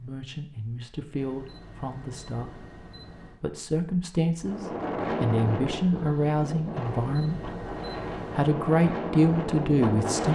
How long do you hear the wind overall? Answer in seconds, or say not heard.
6 s.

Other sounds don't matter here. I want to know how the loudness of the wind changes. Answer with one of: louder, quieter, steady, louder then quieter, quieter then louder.
quieter then louder.